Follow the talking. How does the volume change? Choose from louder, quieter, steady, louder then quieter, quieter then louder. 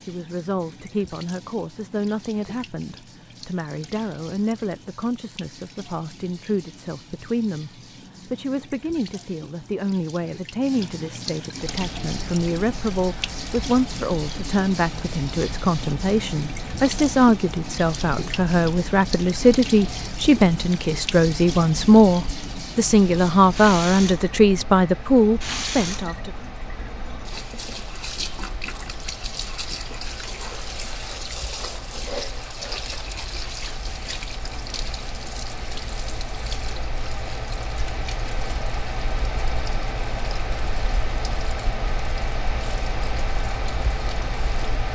louder.